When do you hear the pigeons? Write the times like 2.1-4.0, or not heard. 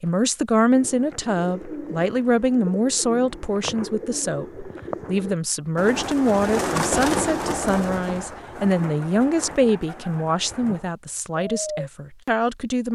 0.7-11.9.